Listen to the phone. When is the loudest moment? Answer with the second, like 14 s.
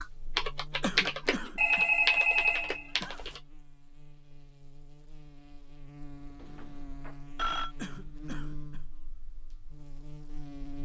2 s.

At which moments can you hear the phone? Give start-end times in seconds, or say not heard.
1.6-3.4, 6.4-7.8.